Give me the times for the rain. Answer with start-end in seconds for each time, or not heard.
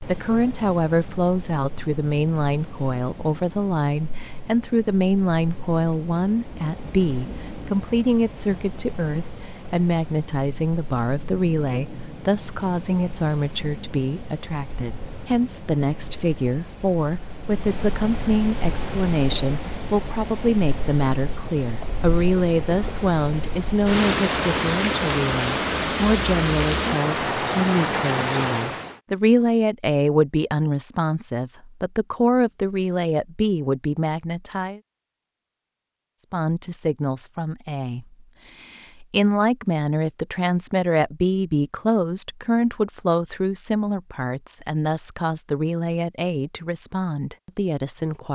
0.0-28.9.